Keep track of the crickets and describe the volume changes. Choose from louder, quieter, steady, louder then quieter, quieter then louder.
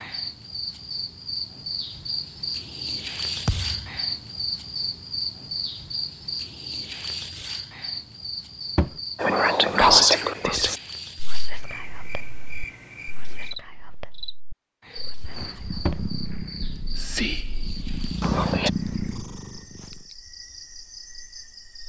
quieter.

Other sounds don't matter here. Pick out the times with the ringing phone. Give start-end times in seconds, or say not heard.
not heard.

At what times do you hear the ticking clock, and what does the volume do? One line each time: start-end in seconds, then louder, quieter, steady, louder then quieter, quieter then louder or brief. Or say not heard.
not heard.